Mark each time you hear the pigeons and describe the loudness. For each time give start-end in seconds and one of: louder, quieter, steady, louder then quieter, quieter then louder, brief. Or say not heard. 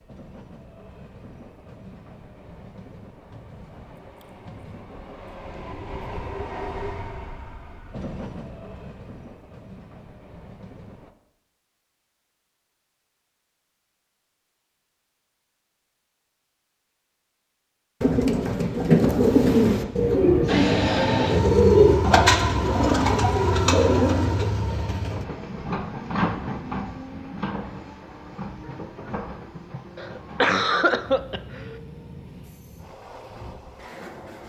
18.0-24.4 steady.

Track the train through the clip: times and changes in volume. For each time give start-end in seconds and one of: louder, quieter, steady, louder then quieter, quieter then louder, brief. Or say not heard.
0.0-11.1 louder then quieter
20.4-34.4 quieter.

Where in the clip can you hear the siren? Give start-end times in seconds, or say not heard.
not heard.